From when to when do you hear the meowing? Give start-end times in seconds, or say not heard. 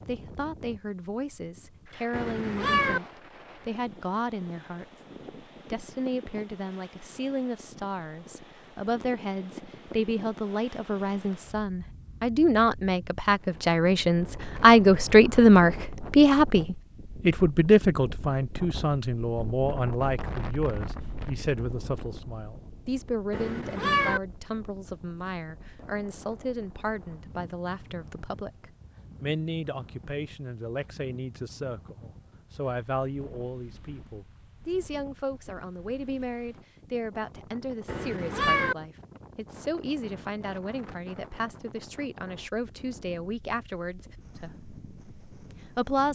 2.1-3.0, 23.3-24.2, 37.9-38.8.